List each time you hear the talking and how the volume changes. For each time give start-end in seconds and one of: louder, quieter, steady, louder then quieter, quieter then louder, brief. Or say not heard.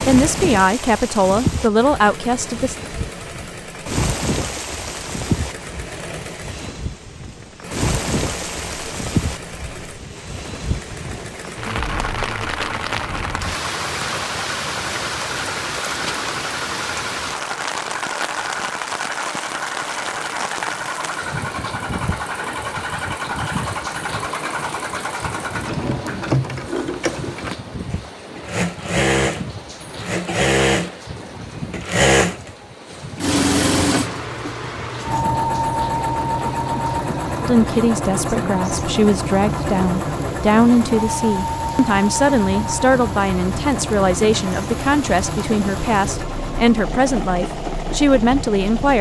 0.0-2.8 brief
37.4-48.9 steady.